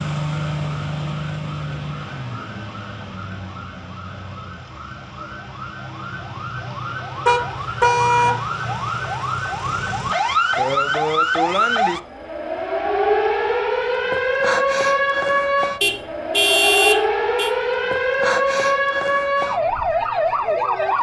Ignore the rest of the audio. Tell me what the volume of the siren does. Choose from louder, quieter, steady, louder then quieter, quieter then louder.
louder.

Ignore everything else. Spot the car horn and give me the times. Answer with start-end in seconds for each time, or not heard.
7.2-8.3, 15.8-17.5.